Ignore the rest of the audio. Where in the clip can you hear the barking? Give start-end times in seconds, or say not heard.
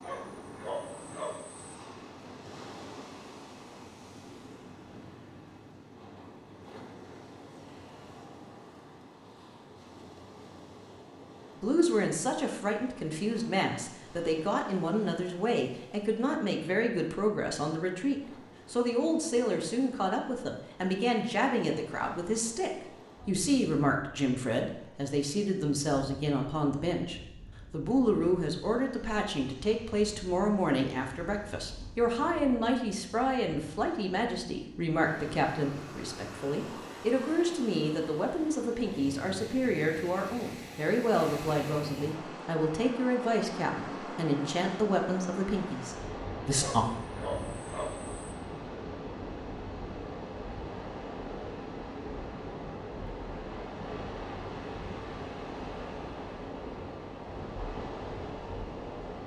0.0-1.7, 46.6-48.4.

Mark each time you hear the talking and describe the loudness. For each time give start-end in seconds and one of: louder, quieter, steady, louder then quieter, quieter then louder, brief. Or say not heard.
11.6-46.9 steady.